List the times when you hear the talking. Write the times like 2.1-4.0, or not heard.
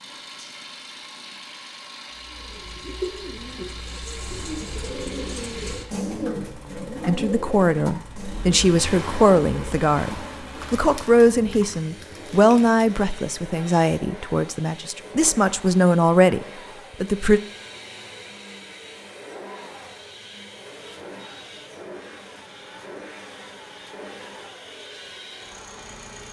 7.0-17.4.